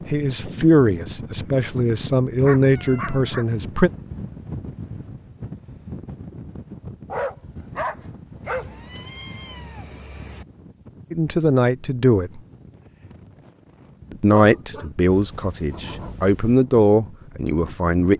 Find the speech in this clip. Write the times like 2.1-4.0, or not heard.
0.1-3.9, 11.1-12.4, 14.1-18.1.